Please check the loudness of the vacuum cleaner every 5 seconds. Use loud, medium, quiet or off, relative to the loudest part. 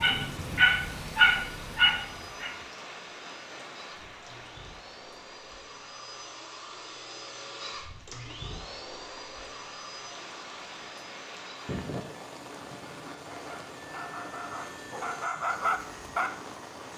medium, loud, medium, medium.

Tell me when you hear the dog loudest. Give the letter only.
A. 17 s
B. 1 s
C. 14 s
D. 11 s
B.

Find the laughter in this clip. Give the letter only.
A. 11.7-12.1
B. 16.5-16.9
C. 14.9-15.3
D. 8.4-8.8
A.